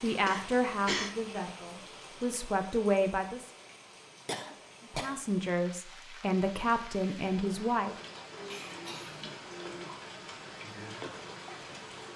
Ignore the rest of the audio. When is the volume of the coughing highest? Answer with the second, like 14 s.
1 s.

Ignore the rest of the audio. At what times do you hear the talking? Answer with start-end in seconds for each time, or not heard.
0.0-3.5, 4.9-8.0.